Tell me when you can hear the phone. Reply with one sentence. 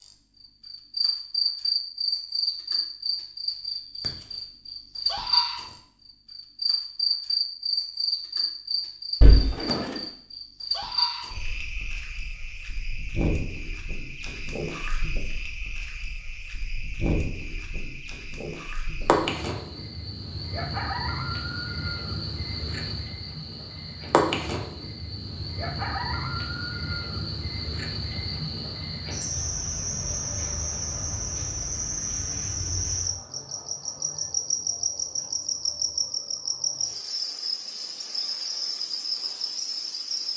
You can hear the phone from 9.2 to 9.9 s.